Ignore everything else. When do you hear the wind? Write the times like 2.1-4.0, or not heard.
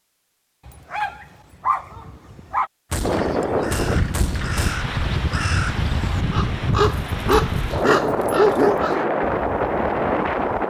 3.0-10.6.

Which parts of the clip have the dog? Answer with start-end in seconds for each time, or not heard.
0.7-2.7, 6.8-9.0.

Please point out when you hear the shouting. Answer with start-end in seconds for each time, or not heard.
not heard.